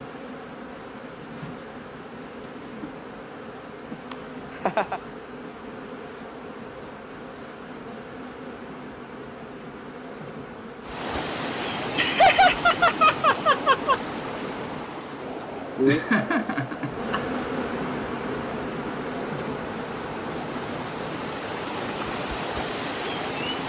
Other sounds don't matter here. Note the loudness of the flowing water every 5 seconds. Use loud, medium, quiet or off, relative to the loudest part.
off, off, loud, medium, loud.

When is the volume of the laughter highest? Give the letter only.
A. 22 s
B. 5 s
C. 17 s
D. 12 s
D.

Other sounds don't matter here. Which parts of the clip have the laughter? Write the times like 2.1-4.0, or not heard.
4.1-5.0, 11.6-14.0, 15.8-17.2.